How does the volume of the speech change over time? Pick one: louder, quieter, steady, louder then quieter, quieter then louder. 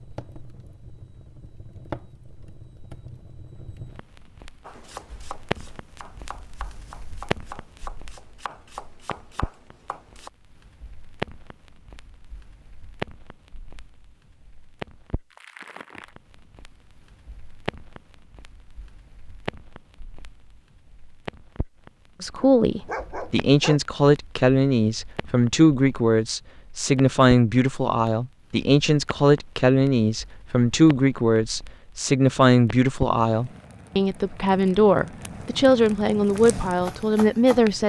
steady.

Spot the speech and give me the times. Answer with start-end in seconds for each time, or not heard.
22.2-37.8.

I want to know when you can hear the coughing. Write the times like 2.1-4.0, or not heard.
not heard.